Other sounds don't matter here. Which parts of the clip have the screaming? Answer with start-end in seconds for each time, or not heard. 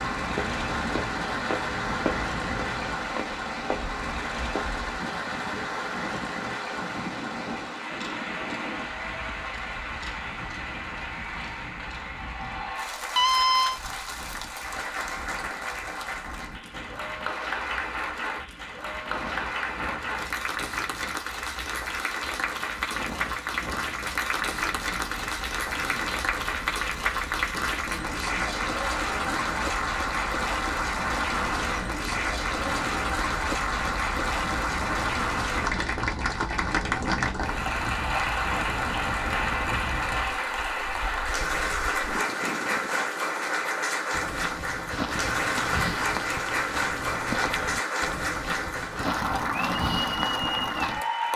13.2-13.8.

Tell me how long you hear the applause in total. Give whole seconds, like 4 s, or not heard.
51 s.